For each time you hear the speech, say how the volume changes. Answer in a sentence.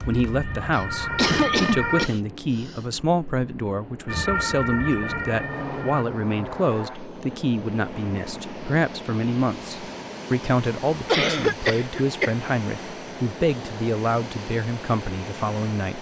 The speech can be heard from 0.1 to 15.9 s, at a steady volume.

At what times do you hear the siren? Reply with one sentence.
You can hear the siren from 0.0 to 2.1 s and from 4.0 to 6.0 s.